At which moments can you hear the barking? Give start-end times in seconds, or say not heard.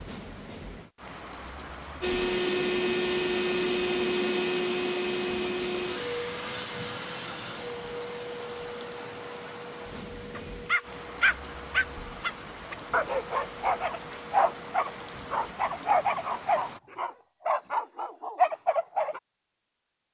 10.3-19.2.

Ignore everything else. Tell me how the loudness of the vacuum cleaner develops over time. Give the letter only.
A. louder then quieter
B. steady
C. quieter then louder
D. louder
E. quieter
E.